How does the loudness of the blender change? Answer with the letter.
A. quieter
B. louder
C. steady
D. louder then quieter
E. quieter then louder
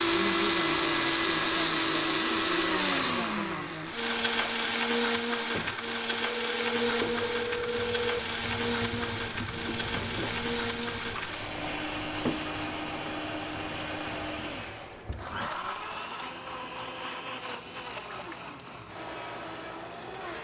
A.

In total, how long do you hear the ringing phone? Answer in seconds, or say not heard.
2 s.